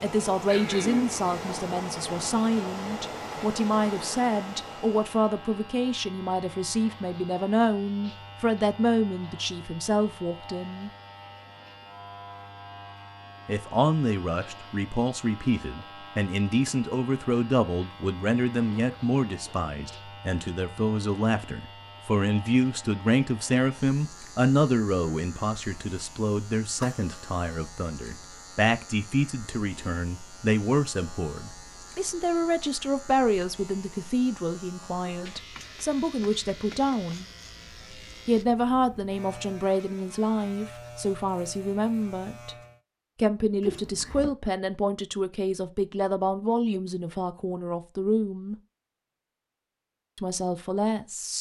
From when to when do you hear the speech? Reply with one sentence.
You can hear the speech from 0.0 to 10.9 s, from 13.4 to 37.2 s, from 38.2 to 42.5 s, from 43.1 to 48.5 s and from 50.1 to 51.3 s.